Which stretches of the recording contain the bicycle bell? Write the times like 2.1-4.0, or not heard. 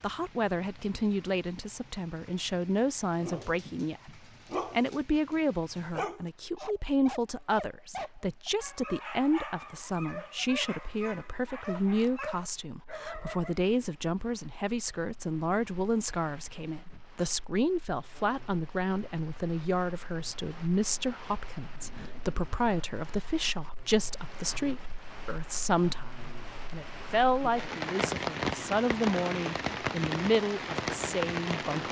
not heard.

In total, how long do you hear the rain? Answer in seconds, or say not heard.
32 s.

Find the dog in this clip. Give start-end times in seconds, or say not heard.
3.1-13.6.